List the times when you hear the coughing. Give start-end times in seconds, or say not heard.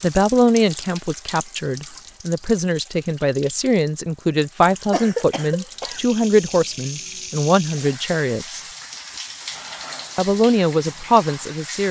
4.9-6.0.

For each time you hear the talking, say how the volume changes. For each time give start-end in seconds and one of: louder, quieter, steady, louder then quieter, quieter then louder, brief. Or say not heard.
0.0-8.6 steady
10.2-11.8 brief.